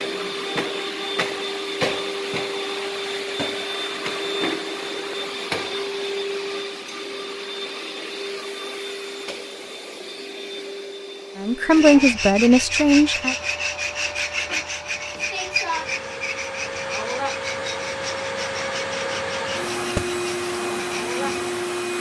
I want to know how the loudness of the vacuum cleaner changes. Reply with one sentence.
The volume of the vacuum cleaner goes down, then up.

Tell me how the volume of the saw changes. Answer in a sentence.
The volume of the saw goes down.